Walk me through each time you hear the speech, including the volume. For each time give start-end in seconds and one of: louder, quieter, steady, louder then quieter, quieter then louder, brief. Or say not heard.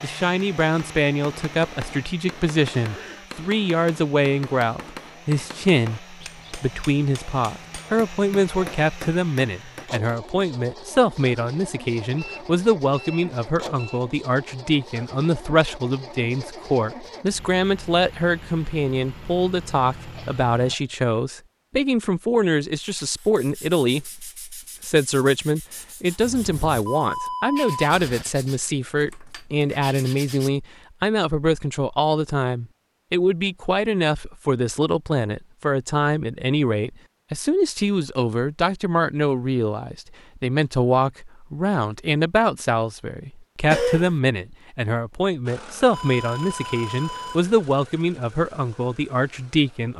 0.0-49.9 steady.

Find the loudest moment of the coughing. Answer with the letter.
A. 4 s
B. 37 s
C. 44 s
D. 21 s
C.